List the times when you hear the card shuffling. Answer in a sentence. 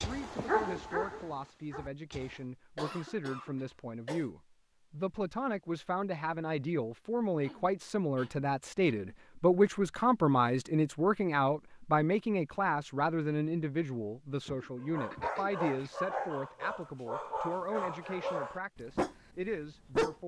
You can't hear the card shuffling here.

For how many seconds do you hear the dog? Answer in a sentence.
The dog can be heard for 8 seconds in total.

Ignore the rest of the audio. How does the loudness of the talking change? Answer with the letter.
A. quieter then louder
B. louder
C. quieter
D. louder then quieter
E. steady
D.